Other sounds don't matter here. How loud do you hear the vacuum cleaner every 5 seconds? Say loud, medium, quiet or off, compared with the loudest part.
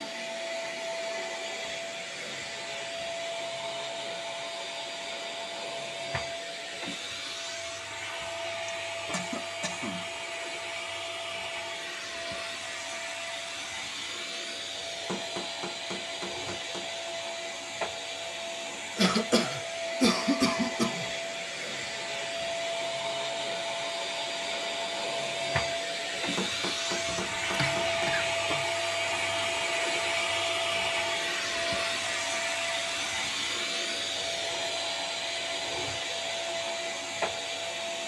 medium, medium, medium, medium, loud, loud, loud, loud.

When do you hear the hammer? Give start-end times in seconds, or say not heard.
15.1-16.9, 26.4-28.1.